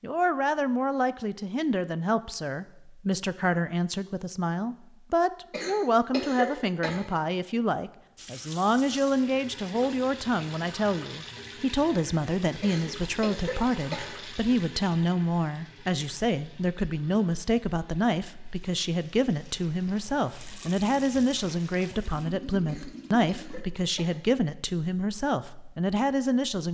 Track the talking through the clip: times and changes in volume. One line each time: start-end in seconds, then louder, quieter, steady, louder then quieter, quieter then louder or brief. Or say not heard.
0.0-26.6 steady.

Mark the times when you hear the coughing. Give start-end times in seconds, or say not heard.
5.5-7.0, 12.6-14.1, 22.6-24.1.